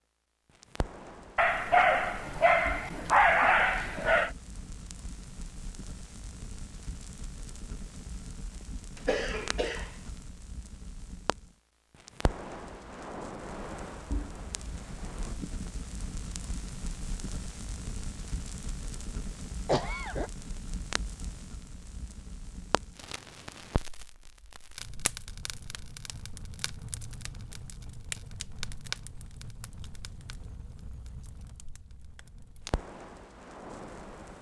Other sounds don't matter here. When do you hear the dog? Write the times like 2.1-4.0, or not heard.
1.4-4.3.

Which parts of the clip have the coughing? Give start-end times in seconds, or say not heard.
8.9-9.9, 19.6-20.3.